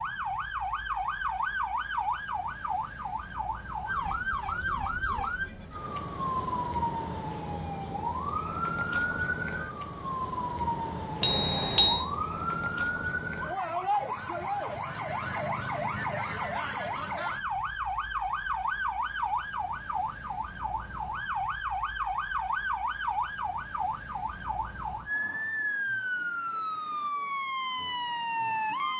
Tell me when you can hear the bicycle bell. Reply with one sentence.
You can hear the bicycle bell from 11.2 to 12.1 s.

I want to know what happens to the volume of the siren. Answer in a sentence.
The volume of the siren stays about the same.